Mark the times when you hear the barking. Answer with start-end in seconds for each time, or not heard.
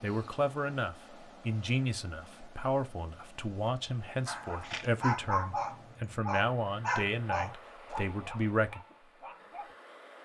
4.2-9.8.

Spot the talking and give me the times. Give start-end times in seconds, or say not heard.
0.0-8.8.